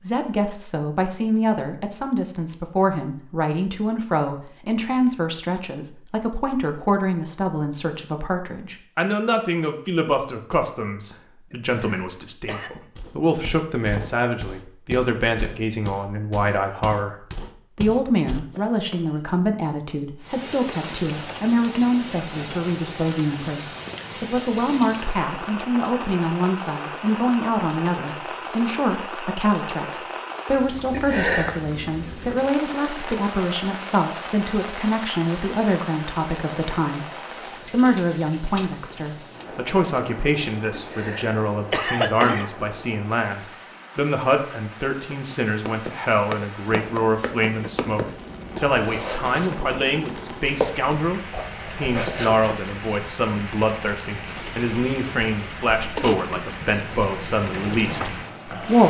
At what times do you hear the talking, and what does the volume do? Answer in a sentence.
You can hear the talking from 0.0 to 37.0 s, at a steady volume; and from 37.7 to 58.8 s, at a steady volume.